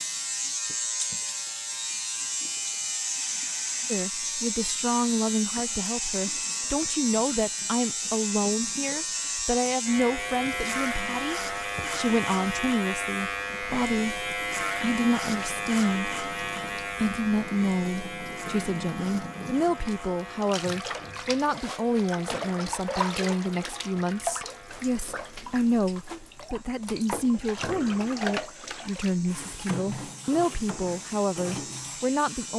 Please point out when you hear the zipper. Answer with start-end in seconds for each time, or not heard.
not heard.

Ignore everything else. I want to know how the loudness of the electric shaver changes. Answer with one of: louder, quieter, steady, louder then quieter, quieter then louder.
quieter.